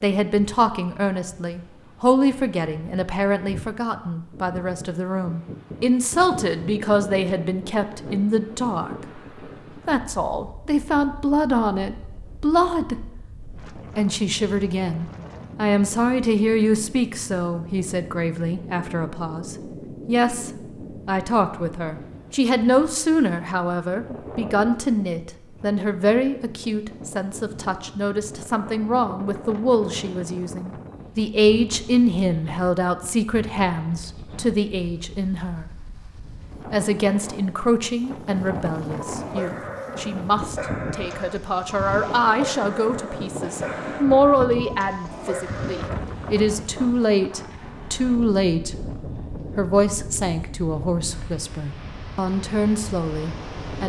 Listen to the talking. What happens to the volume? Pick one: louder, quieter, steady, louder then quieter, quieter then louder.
steady.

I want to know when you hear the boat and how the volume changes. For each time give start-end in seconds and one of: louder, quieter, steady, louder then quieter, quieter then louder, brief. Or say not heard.
not heard.